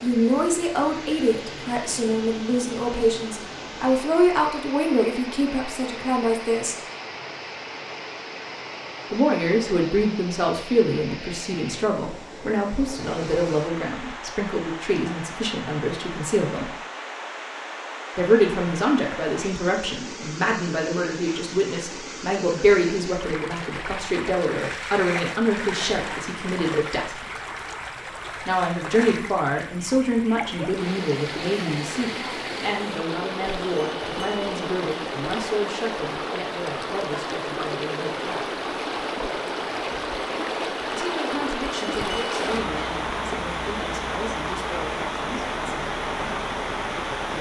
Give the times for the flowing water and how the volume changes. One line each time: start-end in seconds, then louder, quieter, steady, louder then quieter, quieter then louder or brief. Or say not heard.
0.0-47.3 louder.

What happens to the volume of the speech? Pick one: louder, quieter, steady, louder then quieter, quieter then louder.
quieter.